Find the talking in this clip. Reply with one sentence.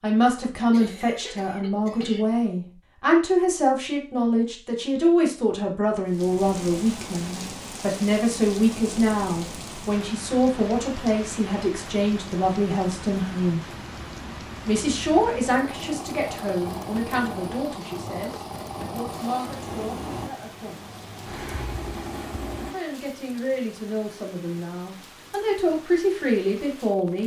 You can hear the talking from 0.0 to 13.7 s, from 14.7 to 20.9 s and from 22.7 to 27.2 s.